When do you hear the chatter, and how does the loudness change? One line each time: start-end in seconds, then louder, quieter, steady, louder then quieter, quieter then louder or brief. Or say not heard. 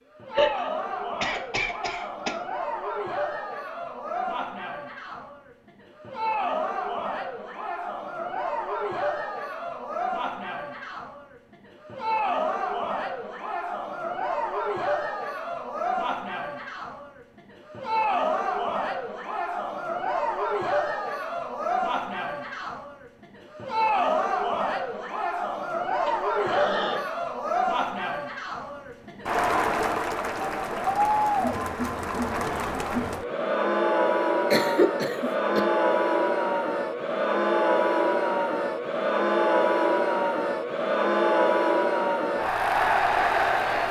0.1-43.8 louder.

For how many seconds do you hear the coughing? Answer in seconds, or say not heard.
4 s.